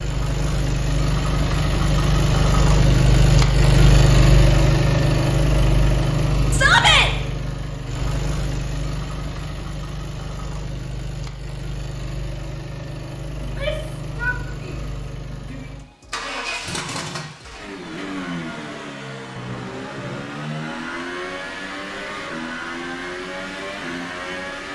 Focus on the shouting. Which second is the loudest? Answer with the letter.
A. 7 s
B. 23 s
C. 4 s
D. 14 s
A.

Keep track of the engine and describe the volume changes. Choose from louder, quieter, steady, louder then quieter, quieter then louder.
quieter.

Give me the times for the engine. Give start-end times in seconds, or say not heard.
0.0-24.7.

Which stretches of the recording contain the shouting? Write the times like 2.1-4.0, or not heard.
6.5-7.1, 13.4-15.7.